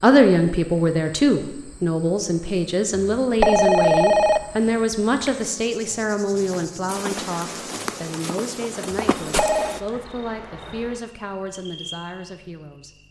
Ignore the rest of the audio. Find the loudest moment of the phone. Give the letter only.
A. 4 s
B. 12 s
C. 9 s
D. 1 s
A.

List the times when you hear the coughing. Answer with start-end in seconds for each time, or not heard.
not heard.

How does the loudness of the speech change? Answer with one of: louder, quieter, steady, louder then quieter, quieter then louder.
quieter.